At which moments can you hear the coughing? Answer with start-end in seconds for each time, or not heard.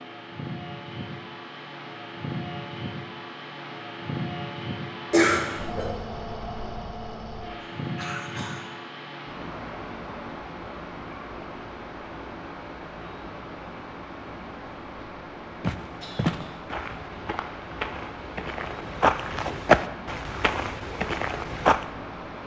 5.1-5.9, 7.6-8.7, 16.0-16.7.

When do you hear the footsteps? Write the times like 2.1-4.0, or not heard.
15.6-21.9.